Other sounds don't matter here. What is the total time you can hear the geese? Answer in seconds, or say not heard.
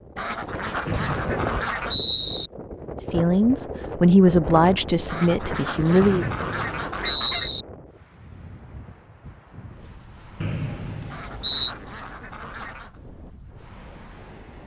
6 s.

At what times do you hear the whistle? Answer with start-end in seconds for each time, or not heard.
0.8-2.5, 6.0-7.7, 10.4-11.8.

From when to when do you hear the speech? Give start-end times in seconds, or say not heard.
3.1-6.2.